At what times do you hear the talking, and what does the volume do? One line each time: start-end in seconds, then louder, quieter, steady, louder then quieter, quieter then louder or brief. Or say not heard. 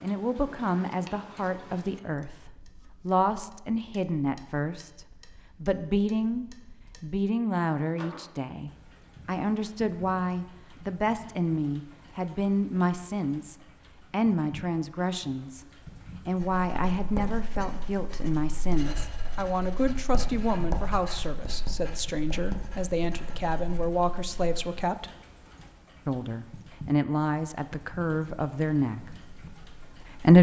0.0-25.1 steady
26.1-30.3 quieter.